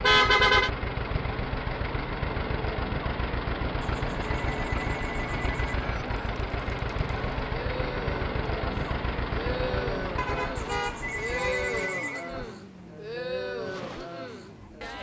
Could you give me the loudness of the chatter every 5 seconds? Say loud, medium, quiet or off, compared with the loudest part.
off, loud, loud.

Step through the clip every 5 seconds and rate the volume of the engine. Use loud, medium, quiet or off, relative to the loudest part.
loud, loud, medium.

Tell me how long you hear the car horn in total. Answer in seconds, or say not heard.
2 s.